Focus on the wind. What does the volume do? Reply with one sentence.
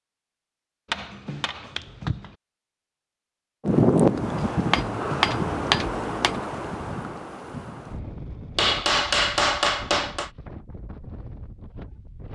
The loudness of the wind goes down.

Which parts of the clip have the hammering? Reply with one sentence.
You can hear the hammering from 0.9 to 2.4 s, from 4.3 to 6.3 s and from 8.6 to 10.3 s.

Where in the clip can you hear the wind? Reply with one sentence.
You can hear the wind from 3.6 to 12.2 s.